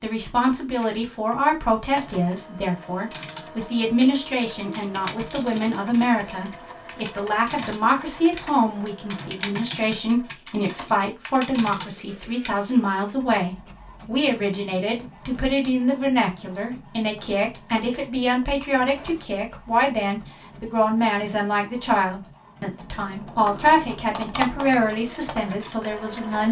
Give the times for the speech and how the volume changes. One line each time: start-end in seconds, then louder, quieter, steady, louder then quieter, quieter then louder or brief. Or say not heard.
0.0-26.4 steady.